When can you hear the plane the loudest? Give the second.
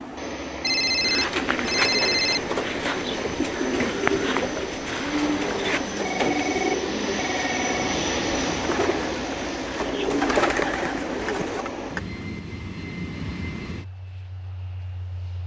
8 s.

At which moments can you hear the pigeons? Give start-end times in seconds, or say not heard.
1.0-11.7.